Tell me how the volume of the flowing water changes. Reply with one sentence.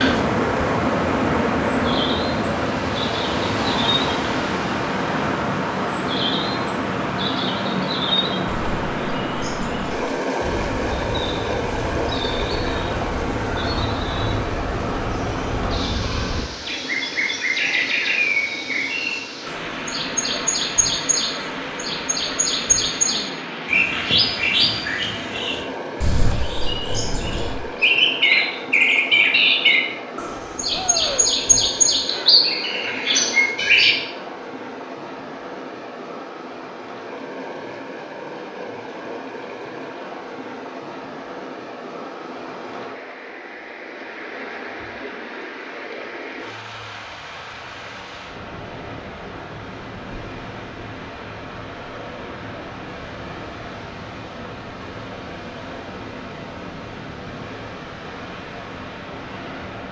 The loudness of the flowing water goes down.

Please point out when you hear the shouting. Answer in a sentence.
You can hear the shouting from 30.7 to 31.3 s.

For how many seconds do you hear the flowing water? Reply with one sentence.
You can hear the flowing water for 60 seconds altogether.